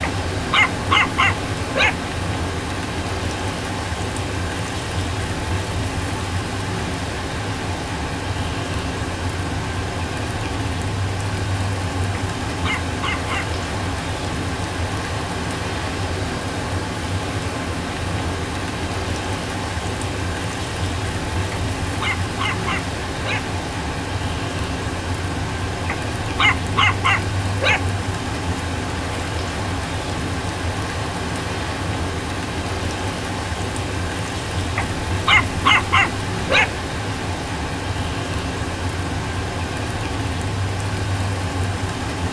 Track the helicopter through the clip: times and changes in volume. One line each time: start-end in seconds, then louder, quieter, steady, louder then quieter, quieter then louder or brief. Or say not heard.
not heard.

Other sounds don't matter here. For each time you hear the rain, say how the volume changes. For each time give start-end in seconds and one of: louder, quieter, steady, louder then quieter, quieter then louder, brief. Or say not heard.
0.0-42.2 steady.